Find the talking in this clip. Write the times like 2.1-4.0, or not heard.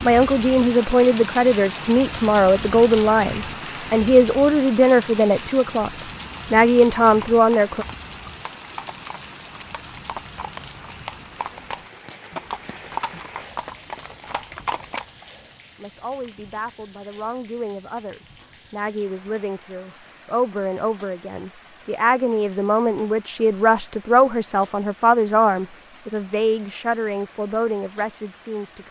0.0-5.9, 6.5-7.8, 15.8-28.8.